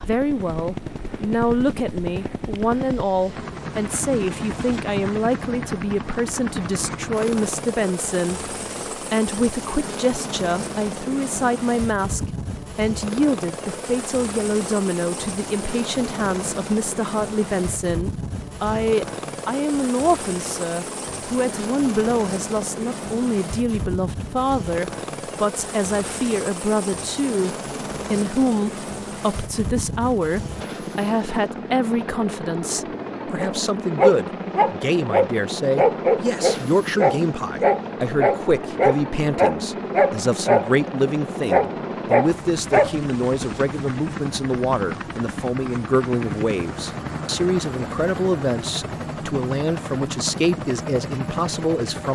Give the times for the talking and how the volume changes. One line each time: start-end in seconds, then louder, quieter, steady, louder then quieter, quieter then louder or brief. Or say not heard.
0.0-52.1 steady.